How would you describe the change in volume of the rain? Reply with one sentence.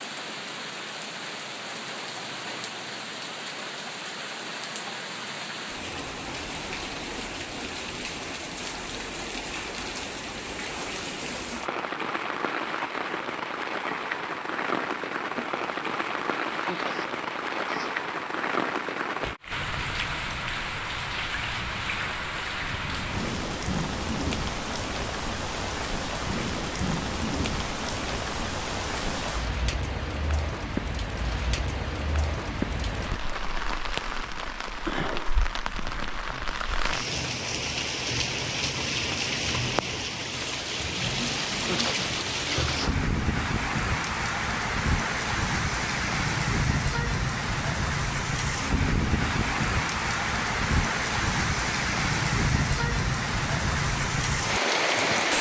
The volume of the rain goes up.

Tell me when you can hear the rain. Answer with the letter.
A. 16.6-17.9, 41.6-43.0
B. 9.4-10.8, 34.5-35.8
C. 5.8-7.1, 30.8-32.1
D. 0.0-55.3
D.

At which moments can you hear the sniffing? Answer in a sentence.
The sniffing can be heard from 16.6 to 17.9 s and from 41.6 to 43.0 s.